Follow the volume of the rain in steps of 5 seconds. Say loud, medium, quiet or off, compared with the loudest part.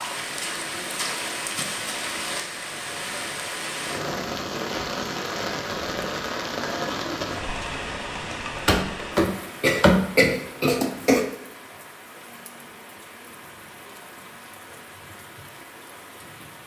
loud, loud, quiet, quiet.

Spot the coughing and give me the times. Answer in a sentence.
The coughing can be heard from 8.7 to 11.2 s.